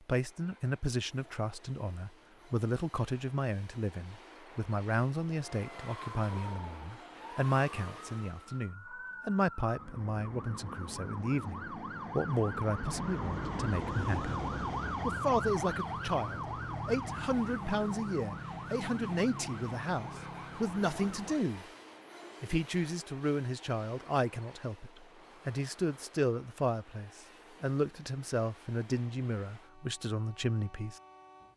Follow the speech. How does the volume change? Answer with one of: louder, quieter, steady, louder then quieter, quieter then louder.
steady.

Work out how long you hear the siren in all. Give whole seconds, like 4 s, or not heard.
16 s.